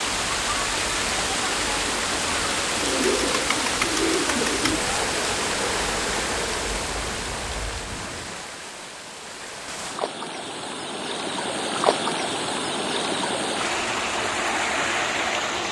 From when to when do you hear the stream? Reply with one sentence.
You can hear the stream from 0.0 to 15.6 s.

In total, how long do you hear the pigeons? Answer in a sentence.
The pigeons can be heard for 2 seconds in total.